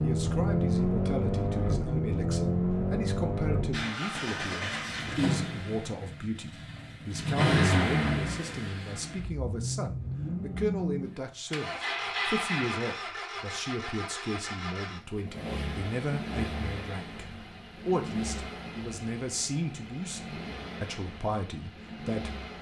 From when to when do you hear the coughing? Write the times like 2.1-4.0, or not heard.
not heard.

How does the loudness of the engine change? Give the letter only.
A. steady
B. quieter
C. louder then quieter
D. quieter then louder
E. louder
B.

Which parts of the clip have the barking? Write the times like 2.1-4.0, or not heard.
not heard.